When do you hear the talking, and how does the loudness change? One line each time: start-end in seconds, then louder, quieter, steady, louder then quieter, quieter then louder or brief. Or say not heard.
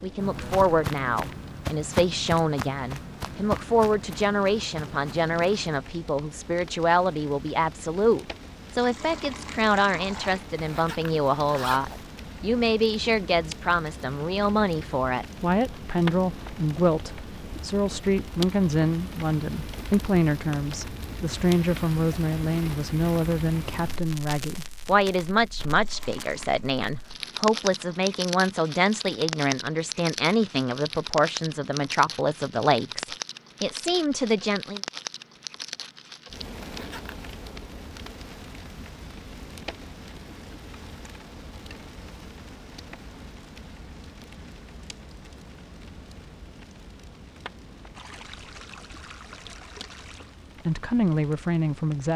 0.0-34.8 steady
50.6-52.1 brief.